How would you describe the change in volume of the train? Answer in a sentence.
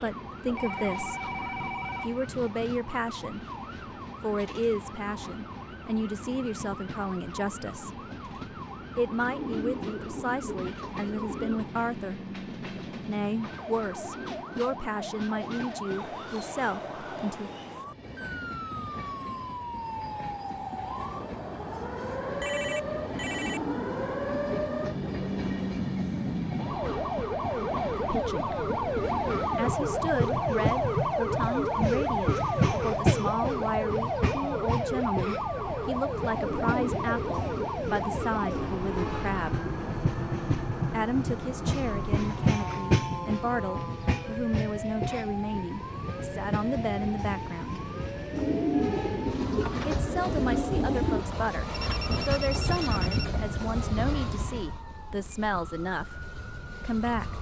The volume of the train goes up.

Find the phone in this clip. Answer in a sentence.
The phone can be heard from 0.6 to 2.2 s, from 22.4 to 23.7 s and from 51.7 to 53.3 s.